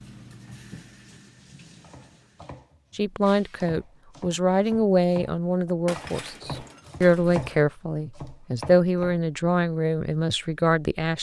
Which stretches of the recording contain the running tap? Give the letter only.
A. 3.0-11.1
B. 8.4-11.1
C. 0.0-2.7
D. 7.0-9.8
C.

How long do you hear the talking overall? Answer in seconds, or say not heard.
8 s.